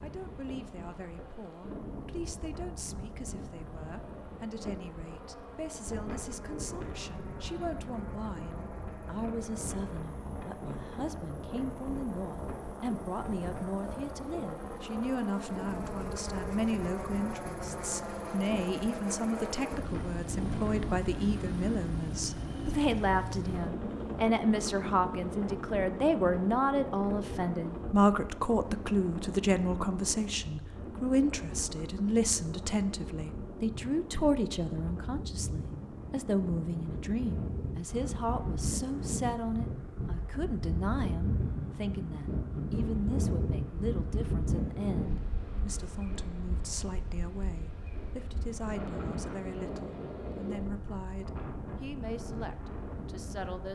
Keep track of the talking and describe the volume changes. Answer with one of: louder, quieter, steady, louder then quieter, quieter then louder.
louder then quieter.